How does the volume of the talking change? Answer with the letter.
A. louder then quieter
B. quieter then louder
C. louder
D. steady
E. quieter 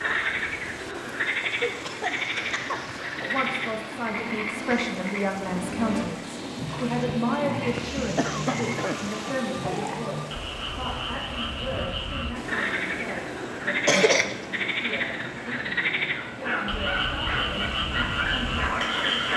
E.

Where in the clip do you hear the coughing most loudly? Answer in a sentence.
The loudest moment of the coughing is at 14 seconds.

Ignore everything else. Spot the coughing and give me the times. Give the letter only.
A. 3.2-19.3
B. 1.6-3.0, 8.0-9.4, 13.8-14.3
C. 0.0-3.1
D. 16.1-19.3
B.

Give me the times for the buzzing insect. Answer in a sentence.
You can't hear the buzzing insect here.